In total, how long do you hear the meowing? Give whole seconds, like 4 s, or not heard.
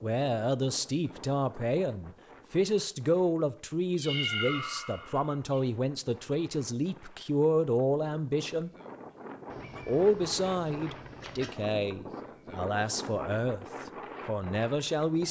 4 s.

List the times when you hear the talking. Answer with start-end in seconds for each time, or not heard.
0.0-8.7, 9.8-13.7, 14.2-15.2.